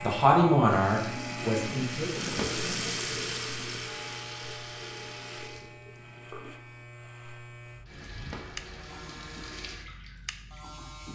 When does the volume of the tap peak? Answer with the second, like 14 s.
3 s.